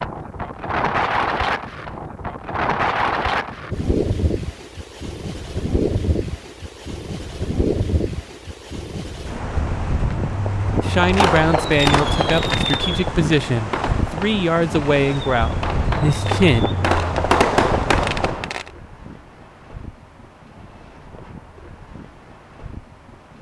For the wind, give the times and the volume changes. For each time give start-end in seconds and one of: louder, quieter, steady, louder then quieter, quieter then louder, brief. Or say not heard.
0.0-23.3 quieter.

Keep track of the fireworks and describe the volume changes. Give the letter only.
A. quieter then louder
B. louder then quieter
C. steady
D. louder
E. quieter
A.